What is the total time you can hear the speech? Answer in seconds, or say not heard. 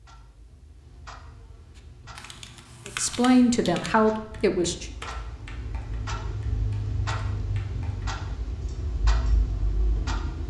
2 s.